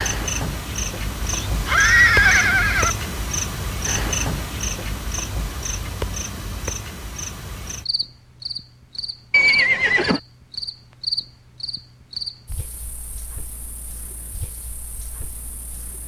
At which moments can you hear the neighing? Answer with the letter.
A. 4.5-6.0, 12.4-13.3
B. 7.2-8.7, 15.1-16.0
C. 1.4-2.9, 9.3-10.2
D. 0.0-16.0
C.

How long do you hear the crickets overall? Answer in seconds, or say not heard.
16 s.